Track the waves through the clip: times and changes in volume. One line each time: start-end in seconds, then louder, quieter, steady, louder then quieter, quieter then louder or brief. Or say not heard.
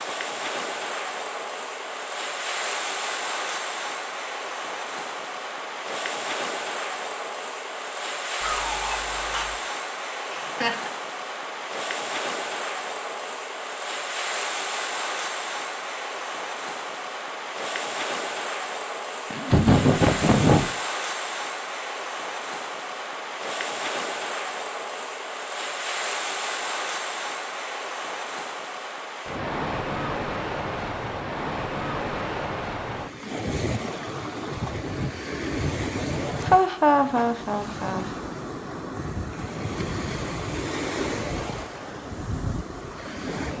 0.0-43.5 steady.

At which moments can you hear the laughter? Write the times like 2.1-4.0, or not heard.
10.3-10.9, 19.3-20.6, 36.5-38.0.